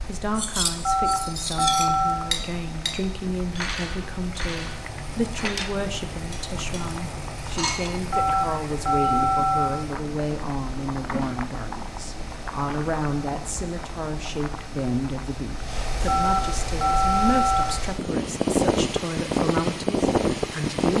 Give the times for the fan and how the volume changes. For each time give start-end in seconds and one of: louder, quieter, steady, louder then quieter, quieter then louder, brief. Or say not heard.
0.0-20.9 louder.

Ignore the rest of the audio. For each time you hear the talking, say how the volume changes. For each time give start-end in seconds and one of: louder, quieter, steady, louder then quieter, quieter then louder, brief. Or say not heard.
0.1-20.9 steady.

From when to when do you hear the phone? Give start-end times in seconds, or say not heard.
0.8-2.2, 8.1-9.7, 16.1-17.6.